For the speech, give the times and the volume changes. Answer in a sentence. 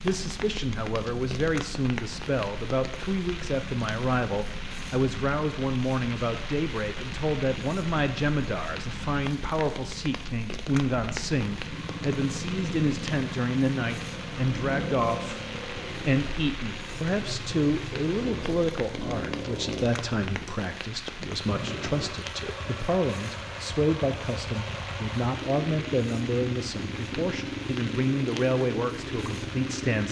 The speech can be heard from 0.0 to 30.0 s, at a steady volume.